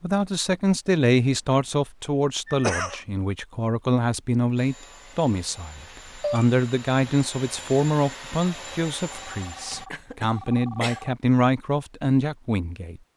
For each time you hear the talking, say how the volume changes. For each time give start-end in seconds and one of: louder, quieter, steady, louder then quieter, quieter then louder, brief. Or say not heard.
0.0-13.0 steady.